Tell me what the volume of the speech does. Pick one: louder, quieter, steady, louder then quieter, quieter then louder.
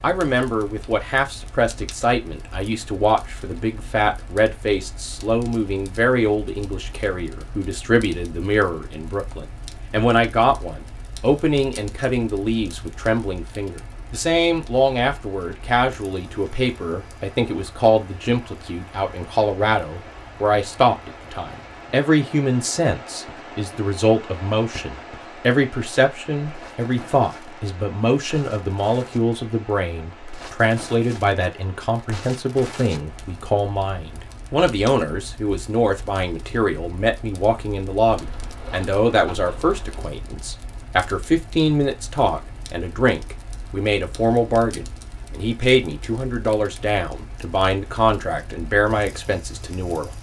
steady.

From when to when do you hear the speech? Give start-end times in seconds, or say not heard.
0.0-50.1.